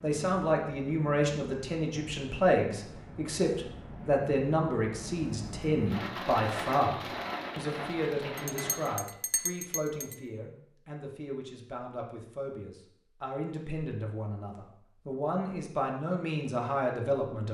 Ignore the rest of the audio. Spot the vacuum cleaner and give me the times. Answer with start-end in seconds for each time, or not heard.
not heard.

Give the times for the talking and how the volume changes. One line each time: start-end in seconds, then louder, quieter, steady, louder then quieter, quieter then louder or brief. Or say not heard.
0.0-17.4 quieter then louder.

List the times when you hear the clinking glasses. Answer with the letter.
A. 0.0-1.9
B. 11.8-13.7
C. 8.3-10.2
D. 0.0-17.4
C.